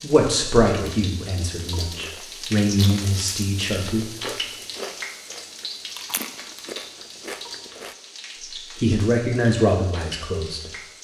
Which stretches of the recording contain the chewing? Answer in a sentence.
You can hear the chewing from 1.9 to 8.0 s.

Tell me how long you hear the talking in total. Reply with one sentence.
The talking can be heard for 6 seconds in total.